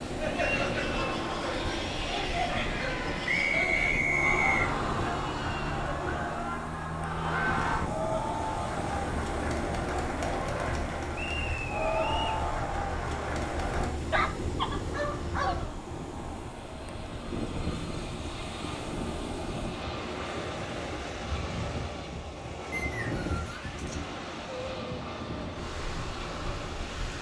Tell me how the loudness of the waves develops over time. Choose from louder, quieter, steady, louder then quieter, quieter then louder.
steady.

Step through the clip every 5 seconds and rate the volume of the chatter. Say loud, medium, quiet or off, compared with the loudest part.
loud, loud, loud, off, off, off.